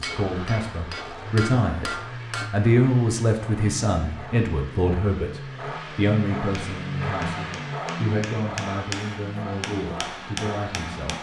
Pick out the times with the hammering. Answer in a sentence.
You can hear the hammering from 0.0 to 2.5 s and from 6.5 to 11.1 s.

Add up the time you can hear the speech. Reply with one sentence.
The speech can be heard for 11 seconds in total.